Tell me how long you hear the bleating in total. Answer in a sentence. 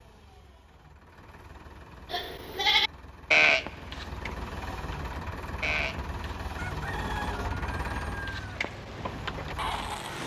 You can hear the bleating for 6 seconds altogether.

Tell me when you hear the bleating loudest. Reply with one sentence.
The volume of the bleating peaks at 3 seconds.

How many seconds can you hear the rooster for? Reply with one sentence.
The rooster can be heard for 2 seconds in total.